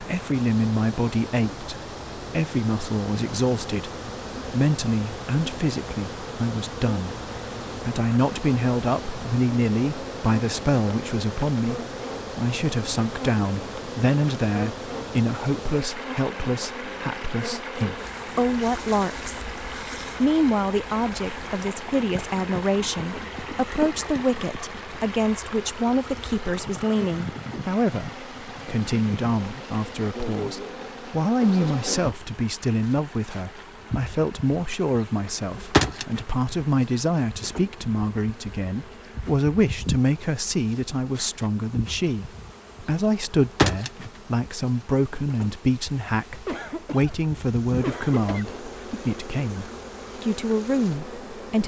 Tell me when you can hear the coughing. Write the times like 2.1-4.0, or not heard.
46.5-48.5.